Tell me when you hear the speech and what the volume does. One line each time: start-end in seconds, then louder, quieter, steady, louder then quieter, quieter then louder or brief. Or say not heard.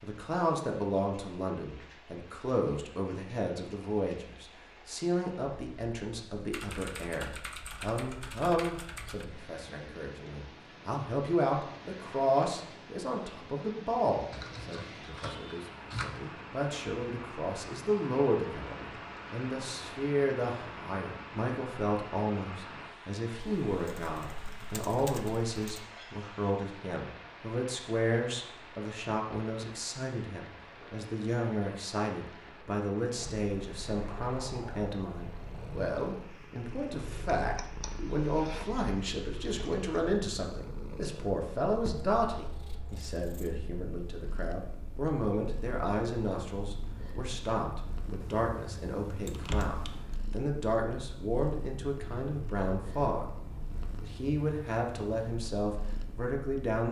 0.0-53.3 steady
54.0-56.8 brief.